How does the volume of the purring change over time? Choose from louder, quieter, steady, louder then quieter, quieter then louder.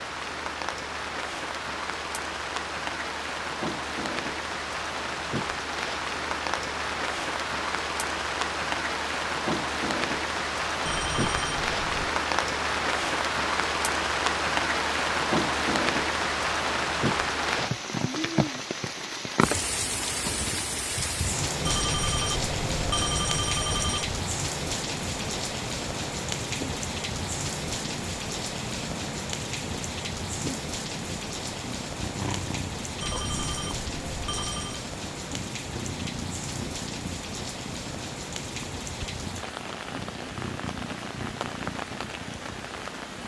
steady.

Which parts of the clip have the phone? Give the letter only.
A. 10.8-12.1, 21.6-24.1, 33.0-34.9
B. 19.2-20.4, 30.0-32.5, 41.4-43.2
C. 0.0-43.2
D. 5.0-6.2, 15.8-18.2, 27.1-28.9
A.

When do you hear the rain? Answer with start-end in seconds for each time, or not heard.
0.0-43.2.